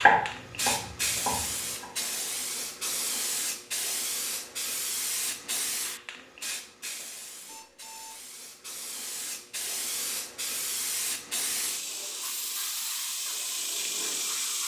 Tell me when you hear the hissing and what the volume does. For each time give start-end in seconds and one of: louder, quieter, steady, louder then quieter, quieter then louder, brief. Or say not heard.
0.0-14.6 quieter then louder.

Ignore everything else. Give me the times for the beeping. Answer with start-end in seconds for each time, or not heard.
7.5-8.3.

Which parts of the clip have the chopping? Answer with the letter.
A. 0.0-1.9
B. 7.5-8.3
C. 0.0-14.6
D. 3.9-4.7
A.